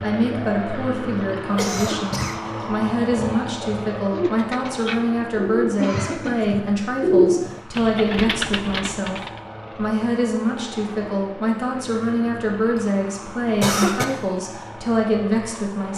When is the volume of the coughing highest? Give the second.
14 s.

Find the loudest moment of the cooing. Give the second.
7 s.